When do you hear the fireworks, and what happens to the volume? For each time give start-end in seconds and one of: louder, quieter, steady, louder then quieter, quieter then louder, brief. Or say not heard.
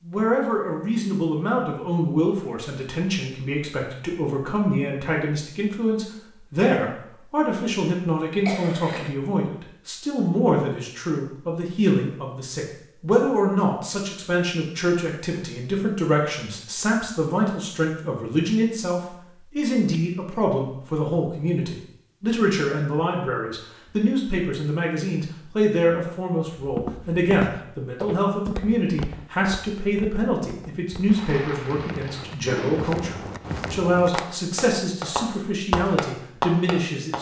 31.1-37.1 louder.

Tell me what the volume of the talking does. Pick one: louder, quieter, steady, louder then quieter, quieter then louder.
steady.